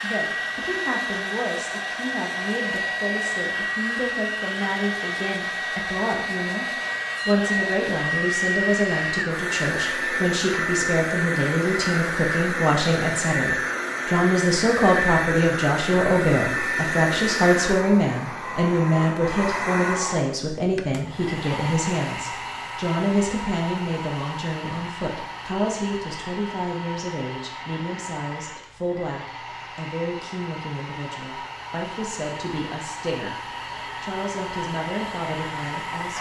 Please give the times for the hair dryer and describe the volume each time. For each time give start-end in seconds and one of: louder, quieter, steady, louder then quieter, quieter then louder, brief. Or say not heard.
0.0-36.1 quieter.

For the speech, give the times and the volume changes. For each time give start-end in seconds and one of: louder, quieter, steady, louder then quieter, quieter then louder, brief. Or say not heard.
0.0-36.1 louder then quieter.